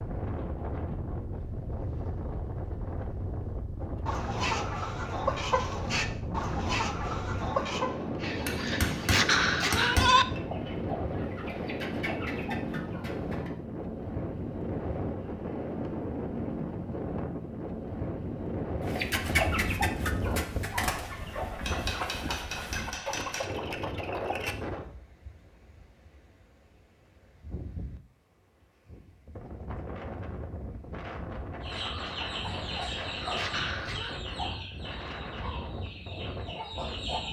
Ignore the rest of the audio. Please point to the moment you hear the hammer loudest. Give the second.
10 s.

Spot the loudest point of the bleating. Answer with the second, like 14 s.
10 s.